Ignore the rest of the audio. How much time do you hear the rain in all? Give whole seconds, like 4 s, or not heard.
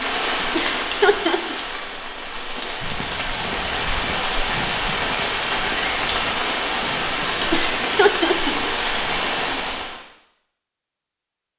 10 s.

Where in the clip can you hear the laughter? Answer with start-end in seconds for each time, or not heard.
0.6-1.6, 7.5-8.6.